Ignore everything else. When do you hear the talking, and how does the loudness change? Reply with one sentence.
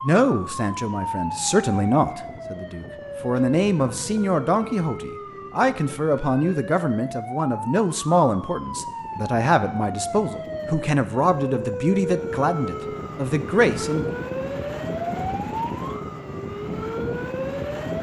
The talking can be heard from 0.0 to 14.1 s, at a steady volume.